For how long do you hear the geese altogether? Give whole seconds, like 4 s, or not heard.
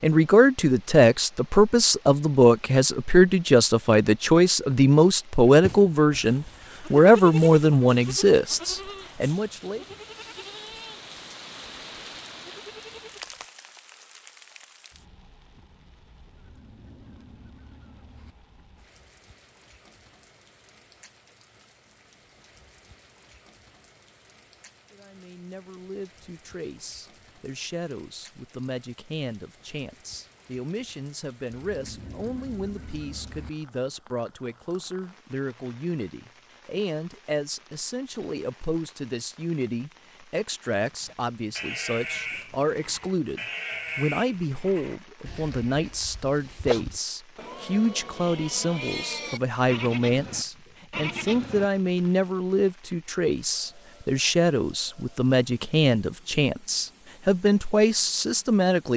4 s.